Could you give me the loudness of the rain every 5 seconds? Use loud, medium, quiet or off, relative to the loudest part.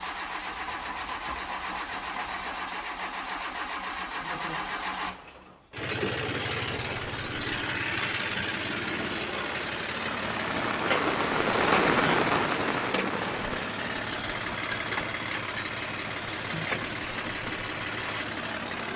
off, quiet, loud, quiet.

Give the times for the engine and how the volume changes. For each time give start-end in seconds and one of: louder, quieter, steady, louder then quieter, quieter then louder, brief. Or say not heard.
0.0-18.9 steady.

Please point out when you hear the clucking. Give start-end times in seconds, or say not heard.
0.5-2.6.